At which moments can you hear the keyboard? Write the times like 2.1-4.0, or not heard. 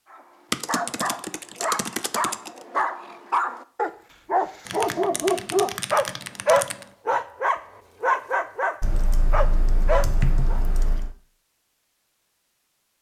0.5-2.5, 4.7-6.8, 8.8-11.2.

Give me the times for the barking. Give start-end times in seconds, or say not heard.
0.1-10.6.